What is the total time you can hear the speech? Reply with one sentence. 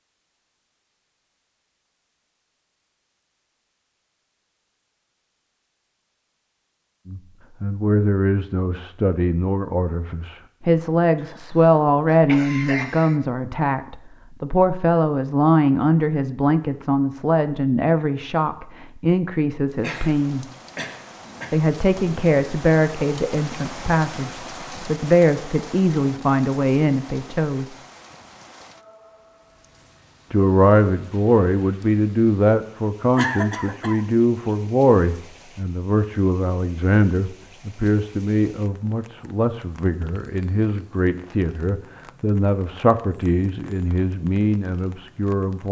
You can hear the speech for 35 seconds altogether.